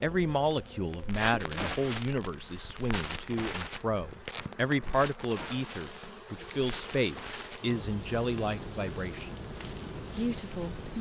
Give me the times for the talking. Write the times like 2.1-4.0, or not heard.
0.0-9.4, 10.2-10.9.